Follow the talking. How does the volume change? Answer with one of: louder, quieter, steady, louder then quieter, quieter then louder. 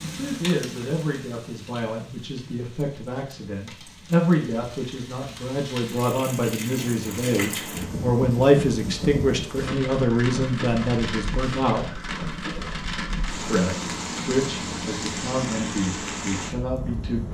louder then quieter.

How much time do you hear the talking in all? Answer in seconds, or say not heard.
16 s.